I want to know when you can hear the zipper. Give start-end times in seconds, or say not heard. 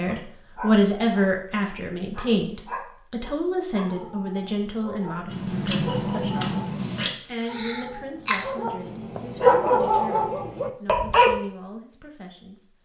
not heard.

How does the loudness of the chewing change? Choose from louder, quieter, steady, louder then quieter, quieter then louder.
quieter.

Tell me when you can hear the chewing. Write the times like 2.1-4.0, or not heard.
5.2-10.6.